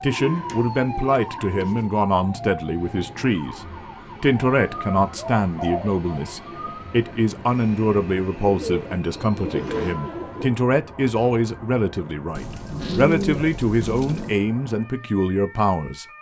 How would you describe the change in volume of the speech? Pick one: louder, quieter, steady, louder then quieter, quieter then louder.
steady.